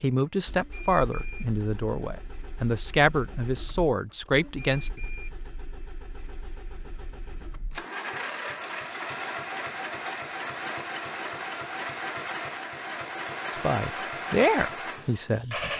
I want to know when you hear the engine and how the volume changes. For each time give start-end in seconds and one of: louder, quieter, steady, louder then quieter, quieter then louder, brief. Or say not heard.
0.1-15.7 louder.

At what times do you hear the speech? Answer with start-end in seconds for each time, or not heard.
0.0-5.0, 13.6-15.6.